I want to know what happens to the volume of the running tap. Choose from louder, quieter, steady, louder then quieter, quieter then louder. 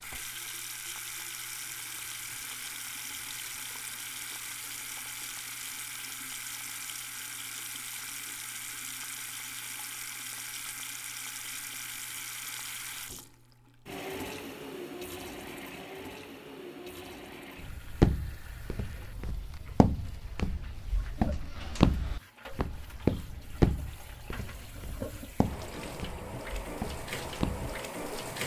quieter then louder.